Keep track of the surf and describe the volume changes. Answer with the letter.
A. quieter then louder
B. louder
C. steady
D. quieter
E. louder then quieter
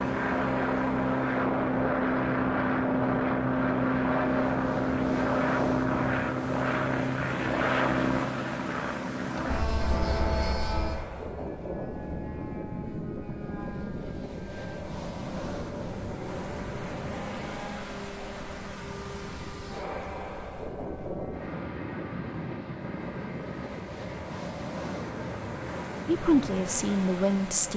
C.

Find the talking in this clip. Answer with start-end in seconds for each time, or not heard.
26.1-27.7.